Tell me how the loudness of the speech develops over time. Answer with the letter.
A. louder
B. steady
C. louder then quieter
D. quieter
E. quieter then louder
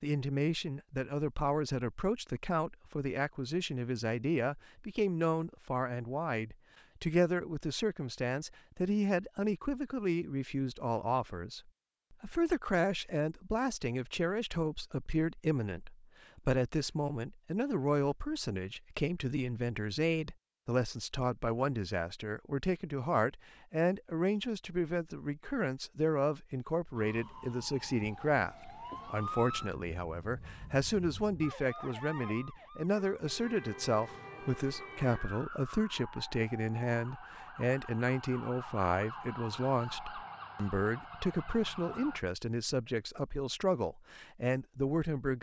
B.